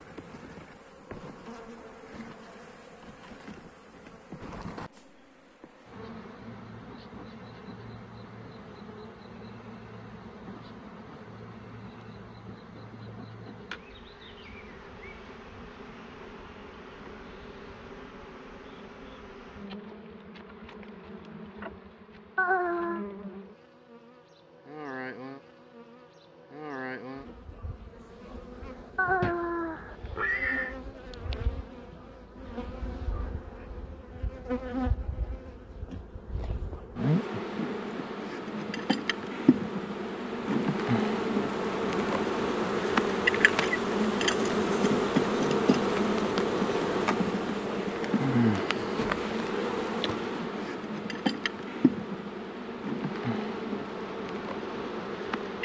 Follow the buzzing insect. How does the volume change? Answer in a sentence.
The volume of the buzzing insect goes up.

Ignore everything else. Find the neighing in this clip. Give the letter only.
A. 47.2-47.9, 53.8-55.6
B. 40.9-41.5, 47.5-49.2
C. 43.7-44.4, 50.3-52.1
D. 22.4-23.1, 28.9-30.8
D.